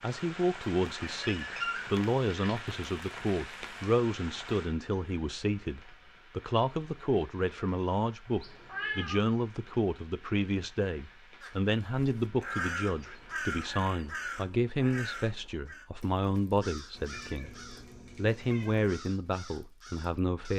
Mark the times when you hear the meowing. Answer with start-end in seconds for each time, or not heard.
1.0-2.7, 8.4-9.2, 16.9-18.9.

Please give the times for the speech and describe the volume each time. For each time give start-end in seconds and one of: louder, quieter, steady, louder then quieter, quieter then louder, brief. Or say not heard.
0.0-20.5 steady.